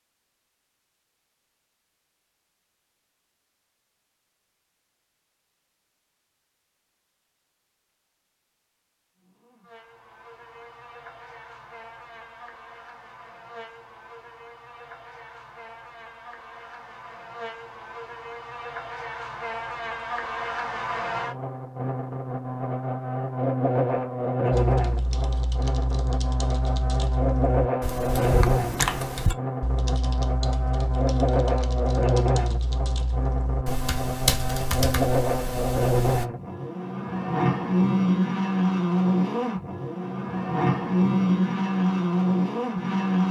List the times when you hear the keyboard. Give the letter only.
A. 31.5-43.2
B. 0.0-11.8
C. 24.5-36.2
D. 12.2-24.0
C.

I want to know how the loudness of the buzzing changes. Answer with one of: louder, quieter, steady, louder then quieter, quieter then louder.
louder.